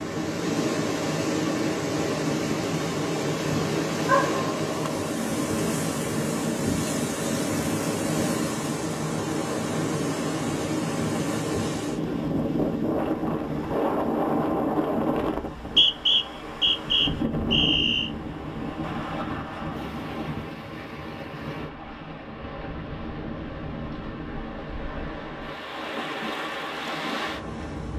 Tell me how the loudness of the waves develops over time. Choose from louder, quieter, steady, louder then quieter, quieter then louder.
quieter.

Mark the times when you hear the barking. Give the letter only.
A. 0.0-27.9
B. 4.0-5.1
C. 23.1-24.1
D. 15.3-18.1
B.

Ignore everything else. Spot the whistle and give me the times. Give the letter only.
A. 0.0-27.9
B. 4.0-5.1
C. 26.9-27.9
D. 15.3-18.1
D.